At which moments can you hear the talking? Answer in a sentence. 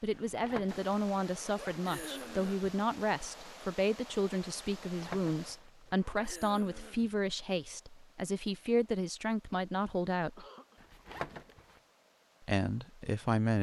The talking can be heard from 0.0 to 10.4 s and from 12.4 to 13.5 s.